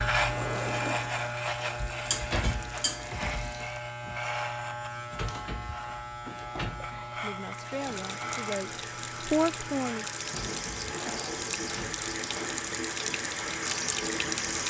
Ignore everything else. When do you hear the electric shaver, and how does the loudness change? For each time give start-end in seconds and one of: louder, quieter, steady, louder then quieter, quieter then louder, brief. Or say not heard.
0.0-14.6 quieter.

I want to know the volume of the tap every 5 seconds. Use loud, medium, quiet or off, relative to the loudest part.
quiet, medium, loud.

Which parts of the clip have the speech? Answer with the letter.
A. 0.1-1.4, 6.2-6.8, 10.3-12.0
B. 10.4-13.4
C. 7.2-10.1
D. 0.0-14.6
C.